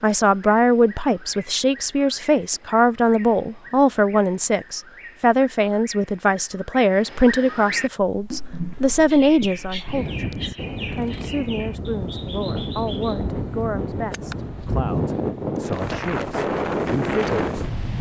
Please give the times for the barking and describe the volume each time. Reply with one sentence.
The barking can't be heard in this clip.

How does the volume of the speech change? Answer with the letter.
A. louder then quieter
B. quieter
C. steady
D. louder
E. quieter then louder
B.